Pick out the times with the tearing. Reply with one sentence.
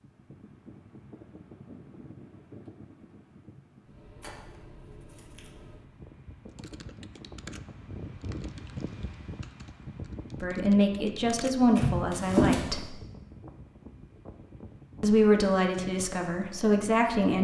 You can hear the tearing from 4.2 to 5.5 s and from 11.8 to 12.7 s.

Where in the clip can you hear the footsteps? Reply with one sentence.
You can't hear the footsteps here.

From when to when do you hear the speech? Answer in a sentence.
The speech can be heard from 10.4 to 12.8 s and from 15.0 to 17.3 s.